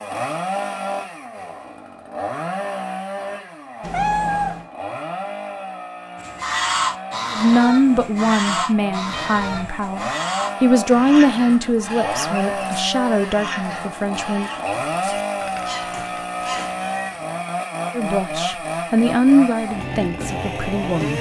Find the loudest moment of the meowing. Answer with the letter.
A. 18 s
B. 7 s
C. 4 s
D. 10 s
C.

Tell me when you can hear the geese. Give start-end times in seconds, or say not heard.
6.2-16.8.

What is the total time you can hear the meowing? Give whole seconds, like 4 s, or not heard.
2 s.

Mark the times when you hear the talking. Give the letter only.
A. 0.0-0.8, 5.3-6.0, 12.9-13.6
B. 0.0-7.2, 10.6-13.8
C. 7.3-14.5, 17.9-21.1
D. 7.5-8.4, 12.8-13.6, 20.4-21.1
C.